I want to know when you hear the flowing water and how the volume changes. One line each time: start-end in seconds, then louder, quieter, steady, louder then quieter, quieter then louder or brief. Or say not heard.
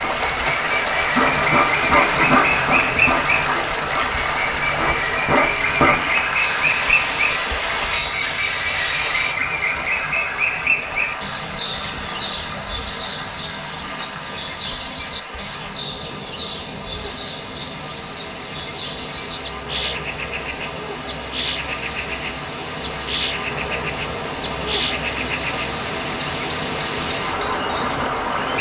0.0-28.5 quieter then louder.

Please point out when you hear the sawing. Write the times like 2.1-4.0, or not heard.
1.1-9.3.